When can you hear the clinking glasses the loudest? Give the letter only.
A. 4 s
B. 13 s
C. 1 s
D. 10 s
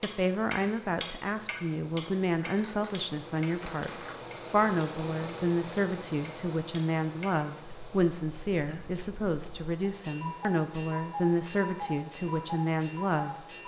A.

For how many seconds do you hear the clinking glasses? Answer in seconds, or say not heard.
2 s.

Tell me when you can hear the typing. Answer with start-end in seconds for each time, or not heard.
not heard.